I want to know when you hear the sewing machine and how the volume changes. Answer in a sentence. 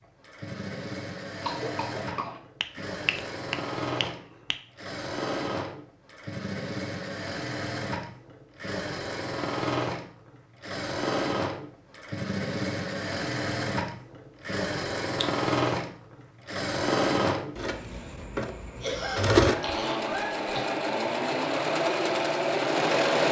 You can hear the sewing machine from 0.0 to 23.2 s, getting louder.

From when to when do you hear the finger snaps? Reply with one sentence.
The finger snaps can be heard from 2.6 to 4.5 s.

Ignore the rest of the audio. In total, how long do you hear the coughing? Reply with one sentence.
You can hear the coughing for 3 seconds altogether.